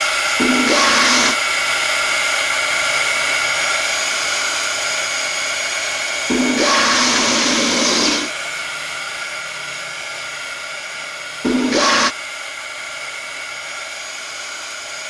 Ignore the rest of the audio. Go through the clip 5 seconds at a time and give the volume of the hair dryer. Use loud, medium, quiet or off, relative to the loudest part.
loud, medium, medium.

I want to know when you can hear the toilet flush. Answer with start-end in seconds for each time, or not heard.
0.3-1.4, 6.2-8.3, 11.4-12.2.